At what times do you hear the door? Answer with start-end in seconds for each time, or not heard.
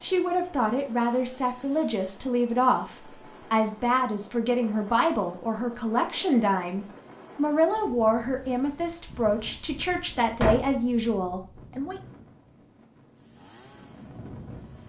9.1-10.8.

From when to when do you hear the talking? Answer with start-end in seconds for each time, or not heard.
0.0-11.9.